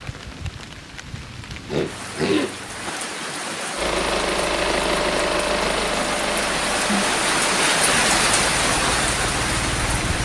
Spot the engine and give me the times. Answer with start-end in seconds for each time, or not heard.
3.8-10.2.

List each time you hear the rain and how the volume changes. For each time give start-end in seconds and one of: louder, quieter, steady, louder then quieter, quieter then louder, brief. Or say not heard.
0.0-10.2 louder.